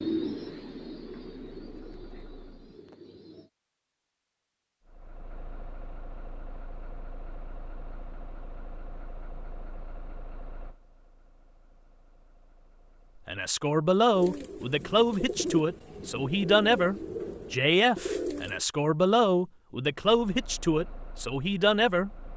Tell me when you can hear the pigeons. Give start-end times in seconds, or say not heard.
0.0-3.5, 14.1-18.6.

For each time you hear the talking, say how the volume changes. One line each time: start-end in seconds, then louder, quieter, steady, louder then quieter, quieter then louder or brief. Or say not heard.
13.2-22.1 steady.